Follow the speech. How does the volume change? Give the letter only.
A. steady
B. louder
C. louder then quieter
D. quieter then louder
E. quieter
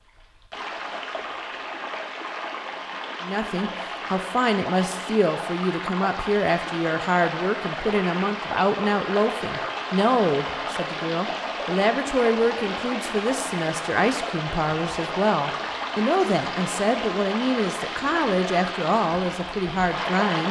A.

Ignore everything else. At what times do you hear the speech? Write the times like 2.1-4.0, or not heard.
3.2-20.4.